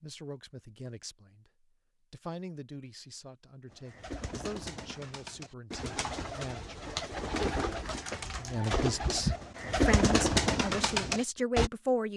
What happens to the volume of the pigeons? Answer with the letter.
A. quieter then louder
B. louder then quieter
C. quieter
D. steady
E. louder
E.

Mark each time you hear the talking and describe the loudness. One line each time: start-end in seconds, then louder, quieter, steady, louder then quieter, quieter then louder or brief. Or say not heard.
0.0-12.1 louder.